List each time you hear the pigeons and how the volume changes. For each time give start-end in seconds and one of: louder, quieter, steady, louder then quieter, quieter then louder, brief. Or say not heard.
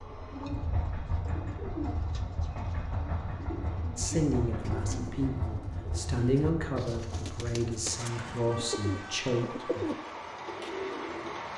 0.3-11.4 louder.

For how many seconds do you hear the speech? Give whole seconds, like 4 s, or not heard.
6 s.